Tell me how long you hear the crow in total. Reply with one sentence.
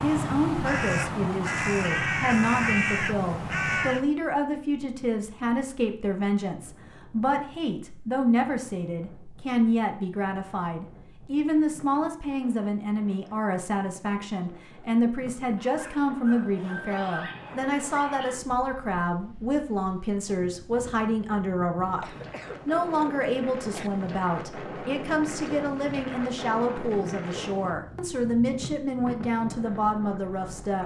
The crow can be heard for 4 seconds in total.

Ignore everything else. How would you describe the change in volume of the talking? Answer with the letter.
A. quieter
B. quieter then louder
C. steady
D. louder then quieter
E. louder
C.